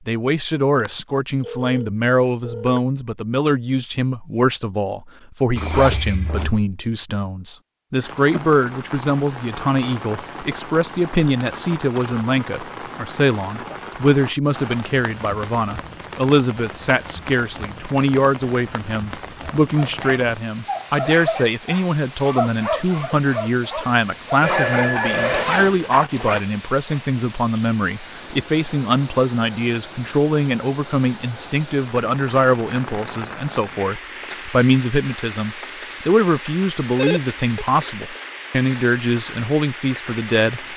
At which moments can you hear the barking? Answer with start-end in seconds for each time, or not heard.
19.4-27.0.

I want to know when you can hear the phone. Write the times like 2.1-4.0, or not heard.
0.8-2.8, 23.8-25.4, 37.0-37.6.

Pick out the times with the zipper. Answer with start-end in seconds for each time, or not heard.
5.5-6.6, 24.4-26.4.